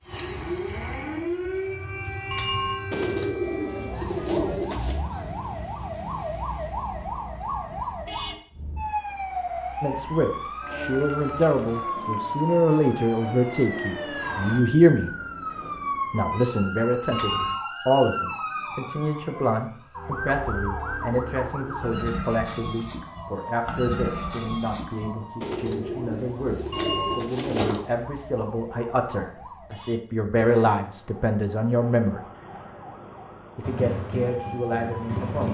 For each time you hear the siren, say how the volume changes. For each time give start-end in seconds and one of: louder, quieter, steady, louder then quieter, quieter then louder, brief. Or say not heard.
0.0-35.1 quieter.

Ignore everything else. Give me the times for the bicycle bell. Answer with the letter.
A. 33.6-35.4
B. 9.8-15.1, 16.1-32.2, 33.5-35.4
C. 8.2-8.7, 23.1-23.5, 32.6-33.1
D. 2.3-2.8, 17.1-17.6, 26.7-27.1
D.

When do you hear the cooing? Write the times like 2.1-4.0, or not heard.
2.9-5.0, 25.4-27.8.